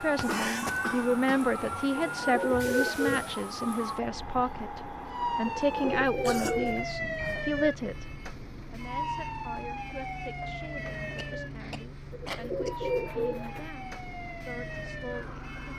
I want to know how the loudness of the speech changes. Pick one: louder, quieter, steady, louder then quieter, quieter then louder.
quieter.